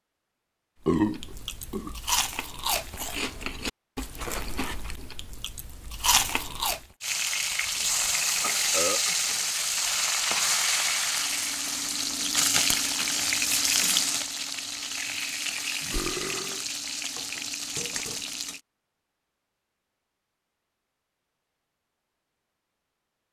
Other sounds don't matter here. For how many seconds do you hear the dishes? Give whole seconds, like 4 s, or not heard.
not heard.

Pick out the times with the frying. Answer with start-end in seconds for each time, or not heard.
7.0-18.6.